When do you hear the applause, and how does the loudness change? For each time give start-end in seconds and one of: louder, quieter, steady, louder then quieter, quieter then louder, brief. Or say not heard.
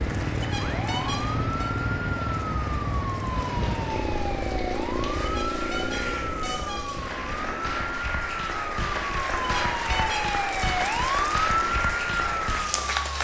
0.1-13.1 louder.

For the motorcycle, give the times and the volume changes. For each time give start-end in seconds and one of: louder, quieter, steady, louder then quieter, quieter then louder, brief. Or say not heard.
0.0-13.1 quieter.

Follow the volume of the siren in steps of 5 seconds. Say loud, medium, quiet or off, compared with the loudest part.
medium, medium, loud.